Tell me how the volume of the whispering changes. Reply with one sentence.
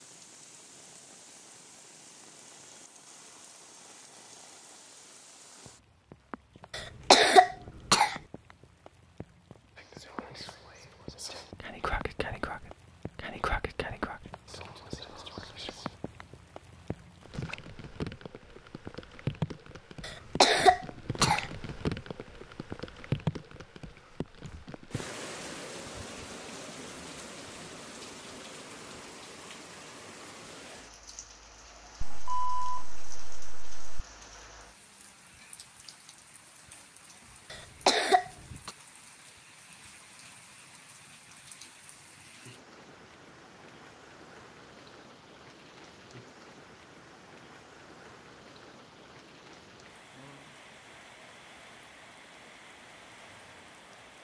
The loudness of the whispering goes up, then down.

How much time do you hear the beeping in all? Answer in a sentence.
The beeping can be heard for 2 seconds in total.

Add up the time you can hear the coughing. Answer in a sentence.
You can hear the coughing for 4 seconds altogether.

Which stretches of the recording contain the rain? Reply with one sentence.
You can hear the rain from 0.0 to 54.1 s.